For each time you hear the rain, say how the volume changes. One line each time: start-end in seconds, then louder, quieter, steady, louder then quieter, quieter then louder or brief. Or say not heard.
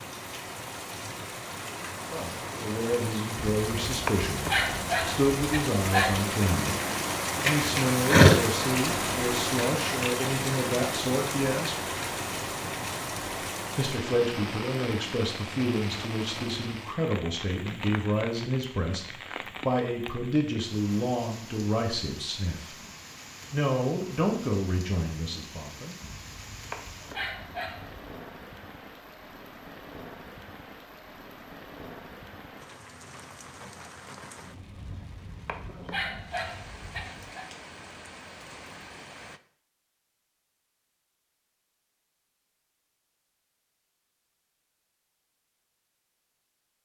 0.0-39.4 quieter.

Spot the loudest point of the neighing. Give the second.
8 s.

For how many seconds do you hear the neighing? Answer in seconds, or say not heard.
2 s.